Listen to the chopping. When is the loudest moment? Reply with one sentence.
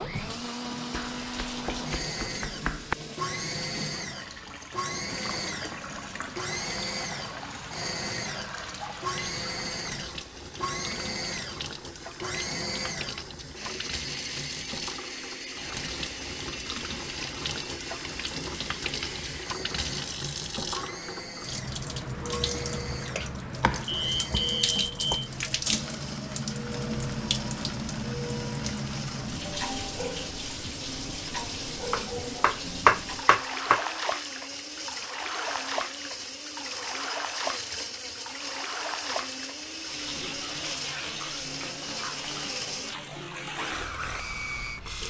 The volume of the chopping peaks at 33 seconds.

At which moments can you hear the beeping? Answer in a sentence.
You can hear the beeping from 23.9 to 25.3 s.